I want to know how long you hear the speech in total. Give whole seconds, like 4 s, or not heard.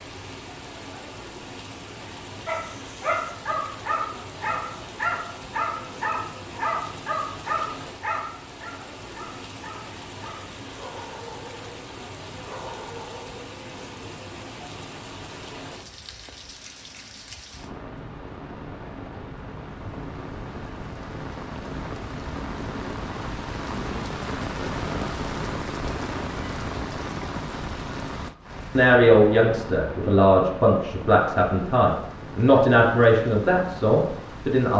6 s.